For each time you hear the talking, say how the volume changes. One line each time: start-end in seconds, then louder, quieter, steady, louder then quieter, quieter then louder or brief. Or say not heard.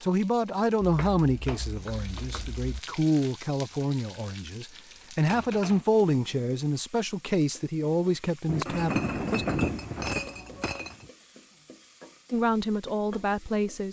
0.0-9.4 steady
12.3-13.8 brief.